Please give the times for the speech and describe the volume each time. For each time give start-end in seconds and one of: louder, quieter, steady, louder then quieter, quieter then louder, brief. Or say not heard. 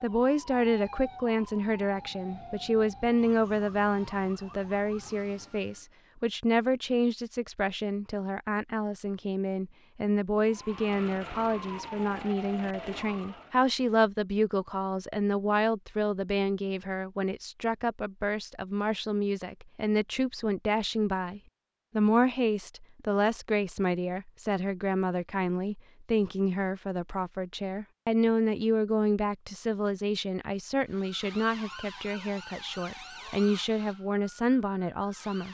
0.0-35.4 steady.